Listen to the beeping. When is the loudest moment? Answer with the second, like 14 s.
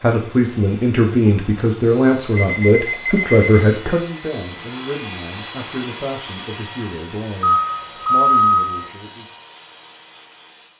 8 s.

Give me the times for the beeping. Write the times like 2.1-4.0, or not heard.
2.4-3.7, 7.5-8.9.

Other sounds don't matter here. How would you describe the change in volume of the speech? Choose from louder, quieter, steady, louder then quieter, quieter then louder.
quieter.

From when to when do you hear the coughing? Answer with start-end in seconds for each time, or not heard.
not heard.